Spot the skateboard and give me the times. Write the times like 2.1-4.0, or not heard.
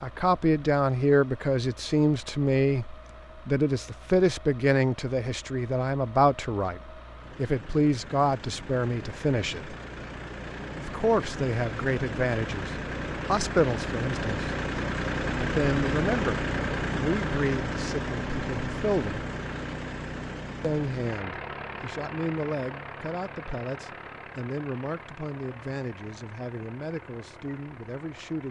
not heard.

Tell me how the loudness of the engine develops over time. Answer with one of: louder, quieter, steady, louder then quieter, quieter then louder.
louder then quieter.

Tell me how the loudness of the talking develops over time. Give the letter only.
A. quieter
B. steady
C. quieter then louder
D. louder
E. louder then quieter
A.